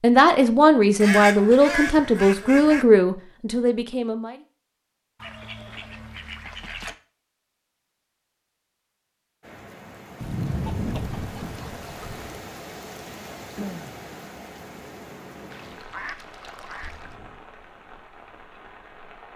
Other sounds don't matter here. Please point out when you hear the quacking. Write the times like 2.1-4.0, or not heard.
1.0-2.9, 5.2-7.0, 10.2-12.4, 15.5-17.1.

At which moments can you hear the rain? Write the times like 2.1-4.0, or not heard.
9.4-19.3.